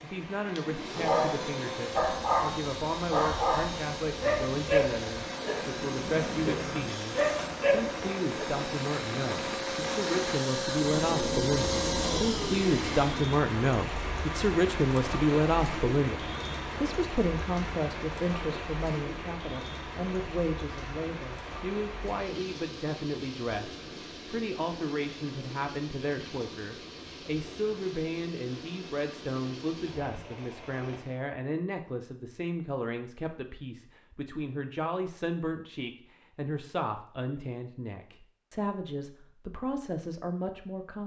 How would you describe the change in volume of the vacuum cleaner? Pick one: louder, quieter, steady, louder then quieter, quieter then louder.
louder.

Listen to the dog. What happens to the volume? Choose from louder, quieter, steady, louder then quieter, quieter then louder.
quieter then louder.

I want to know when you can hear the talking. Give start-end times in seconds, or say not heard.
0.0-41.0.